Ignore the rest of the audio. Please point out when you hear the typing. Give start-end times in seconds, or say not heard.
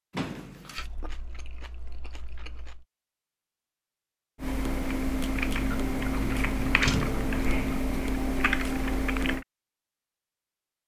4.4-9.4.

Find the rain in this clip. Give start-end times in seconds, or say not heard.
not heard.